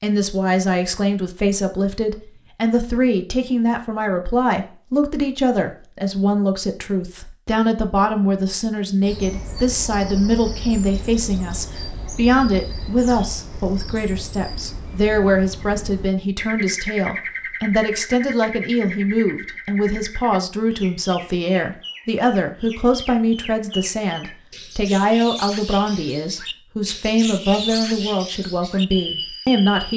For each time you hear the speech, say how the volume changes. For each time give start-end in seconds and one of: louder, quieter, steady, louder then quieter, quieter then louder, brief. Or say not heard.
0.0-29.9 steady.